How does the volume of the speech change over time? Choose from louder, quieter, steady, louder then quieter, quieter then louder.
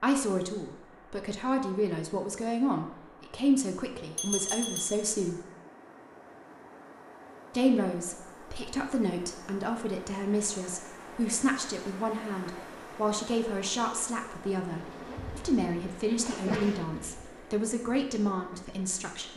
steady.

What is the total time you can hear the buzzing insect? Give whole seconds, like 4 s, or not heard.
3 s.